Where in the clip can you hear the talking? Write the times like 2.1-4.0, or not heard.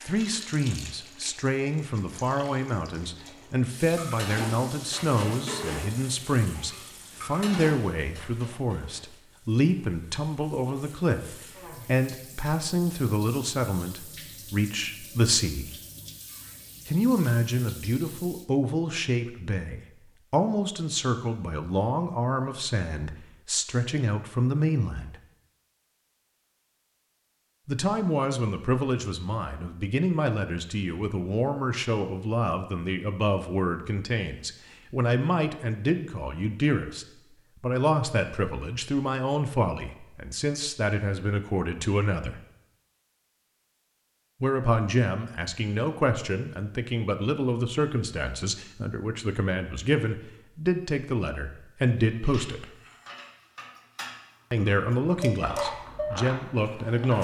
0.0-15.7, 16.9-25.1, 27.6-42.4, 44.4-52.7, 54.5-57.1.